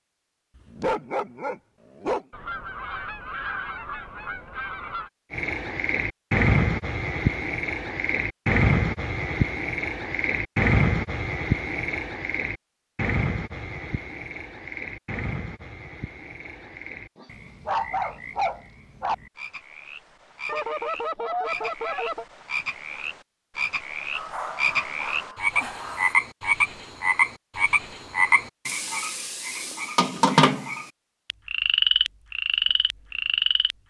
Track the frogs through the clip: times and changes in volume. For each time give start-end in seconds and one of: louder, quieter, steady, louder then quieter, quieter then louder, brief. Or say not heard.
5.3-33.8 quieter then louder.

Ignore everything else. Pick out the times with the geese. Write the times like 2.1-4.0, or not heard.
2.3-5.1, 20.4-22.2.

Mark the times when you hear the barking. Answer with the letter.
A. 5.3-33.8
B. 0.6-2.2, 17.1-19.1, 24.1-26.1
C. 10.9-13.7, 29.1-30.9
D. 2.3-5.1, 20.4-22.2
B.